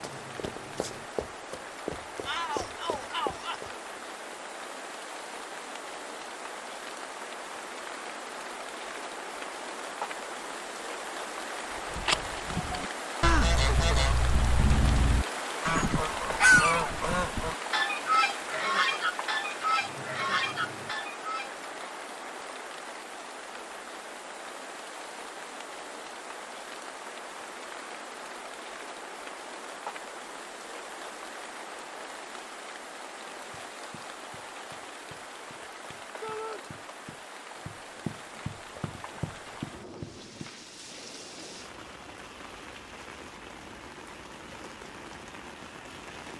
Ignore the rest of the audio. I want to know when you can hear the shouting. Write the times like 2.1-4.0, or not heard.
2.2-3.7, 36.2-36.6.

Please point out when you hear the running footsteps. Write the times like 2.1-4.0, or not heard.
0.0-4.4, 33.4-40.5.